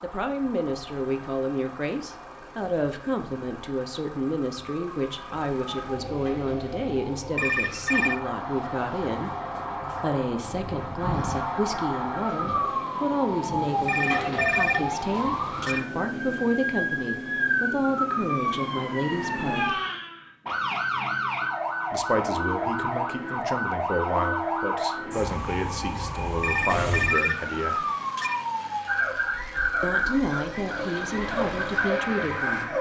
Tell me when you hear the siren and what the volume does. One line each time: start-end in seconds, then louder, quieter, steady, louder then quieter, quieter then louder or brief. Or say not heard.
0.0-32.7 louder.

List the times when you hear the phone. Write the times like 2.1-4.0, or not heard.
7.3-8.2, 13.8-15.8, 26.4-28.4.